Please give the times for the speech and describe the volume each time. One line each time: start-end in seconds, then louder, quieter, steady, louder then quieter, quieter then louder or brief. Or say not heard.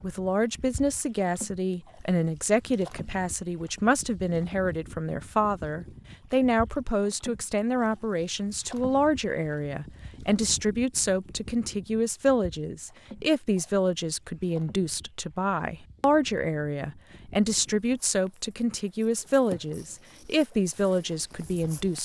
0.0-22.0 steady.